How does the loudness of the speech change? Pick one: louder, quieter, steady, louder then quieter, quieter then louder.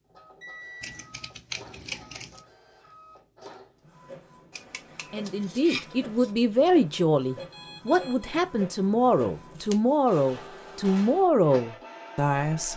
steady.